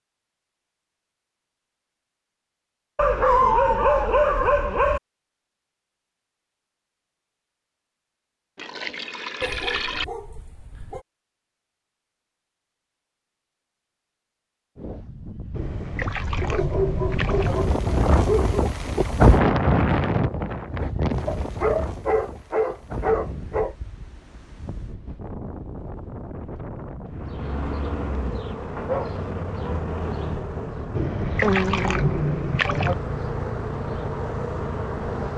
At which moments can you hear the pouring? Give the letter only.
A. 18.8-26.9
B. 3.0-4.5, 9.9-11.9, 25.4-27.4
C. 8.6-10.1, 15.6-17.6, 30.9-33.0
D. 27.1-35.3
C.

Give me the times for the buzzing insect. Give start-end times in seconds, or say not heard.
27.1-35.3.